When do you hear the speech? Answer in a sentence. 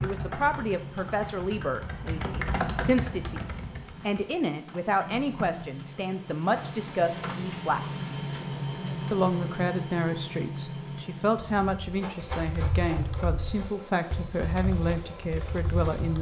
The speech can be heard from 0.0 to 7.8 s and from 9.1 to 16.1 s.